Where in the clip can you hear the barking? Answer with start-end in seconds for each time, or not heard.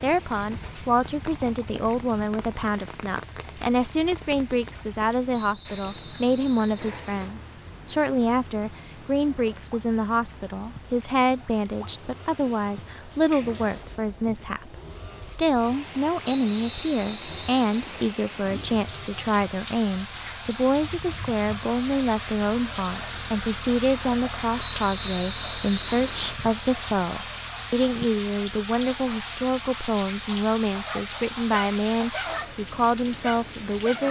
30.7-32.5, 33.2-34.0.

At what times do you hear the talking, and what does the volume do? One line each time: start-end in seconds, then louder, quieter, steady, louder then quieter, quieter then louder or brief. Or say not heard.
0.0-34.0 steady.